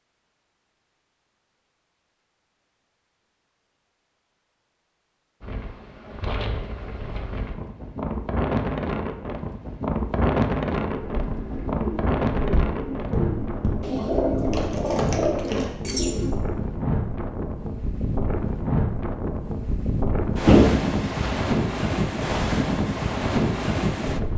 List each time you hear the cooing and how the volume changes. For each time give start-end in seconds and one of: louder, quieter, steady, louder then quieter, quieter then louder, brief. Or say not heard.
10.8-16.4 louder.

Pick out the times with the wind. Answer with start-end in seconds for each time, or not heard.
5.4-24.3.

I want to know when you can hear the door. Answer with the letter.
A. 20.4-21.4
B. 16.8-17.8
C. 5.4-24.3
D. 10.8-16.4
A.